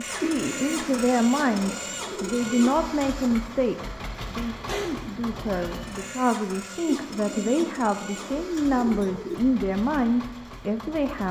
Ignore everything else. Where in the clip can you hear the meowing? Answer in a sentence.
The meowing can be heard from 4.7 to 6.2 s.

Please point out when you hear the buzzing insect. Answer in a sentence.
The buzzing insect can't be heard in this clip.